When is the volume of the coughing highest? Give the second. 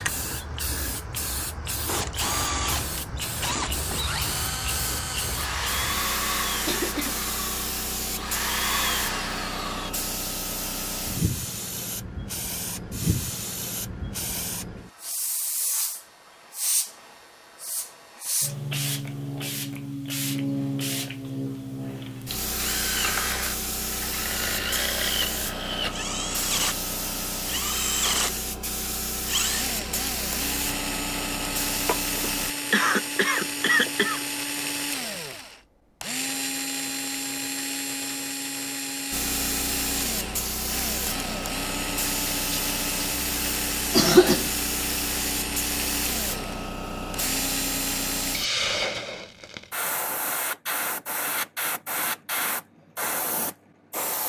44 s.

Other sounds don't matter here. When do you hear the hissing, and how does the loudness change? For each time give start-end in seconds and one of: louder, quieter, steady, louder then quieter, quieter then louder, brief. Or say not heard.
0.0-32.5 steady
39.1-54.2 steady.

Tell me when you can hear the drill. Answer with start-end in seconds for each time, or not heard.
1.9-9.9, 22.6-48.4.